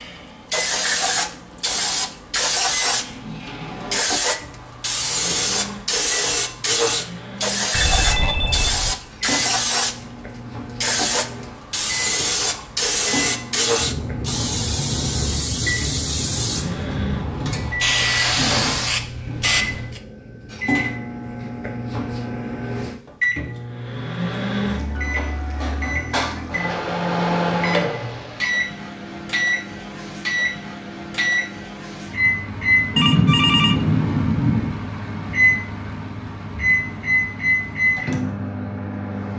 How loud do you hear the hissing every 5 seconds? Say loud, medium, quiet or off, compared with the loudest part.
loud, loud, loud, loud, off, off, off, off.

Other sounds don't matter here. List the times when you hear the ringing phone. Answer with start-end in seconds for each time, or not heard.
7.7-8.9, 33.0-34.8.